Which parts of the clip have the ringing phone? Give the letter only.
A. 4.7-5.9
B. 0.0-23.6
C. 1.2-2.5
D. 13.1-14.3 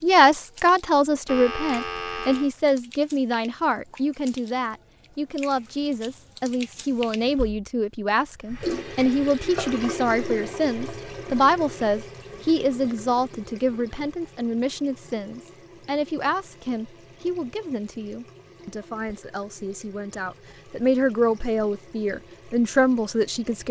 C.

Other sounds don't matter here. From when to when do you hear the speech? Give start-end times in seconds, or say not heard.
0.0-23.6.